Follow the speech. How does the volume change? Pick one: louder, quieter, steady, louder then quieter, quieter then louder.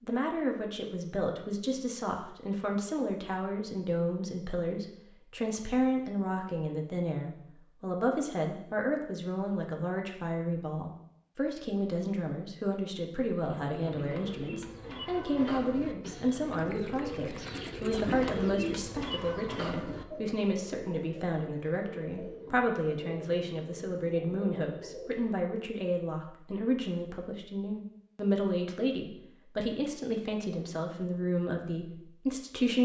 steady.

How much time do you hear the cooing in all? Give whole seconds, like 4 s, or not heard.
12 s.